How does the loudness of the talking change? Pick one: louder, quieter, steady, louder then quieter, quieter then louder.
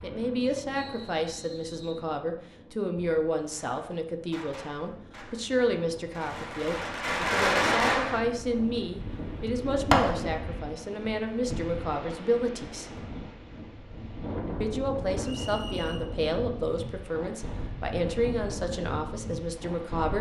steady.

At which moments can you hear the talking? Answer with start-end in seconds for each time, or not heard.
0.0-12.9, 14.6-20.1.